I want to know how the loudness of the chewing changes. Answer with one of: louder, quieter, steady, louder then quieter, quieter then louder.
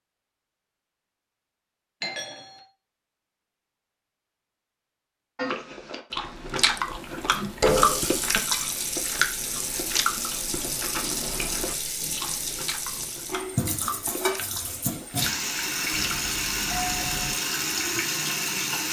quieter.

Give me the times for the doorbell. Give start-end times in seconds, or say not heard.
2.0-2.6, 15.9-17.4.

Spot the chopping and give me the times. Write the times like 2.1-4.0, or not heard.
not heard.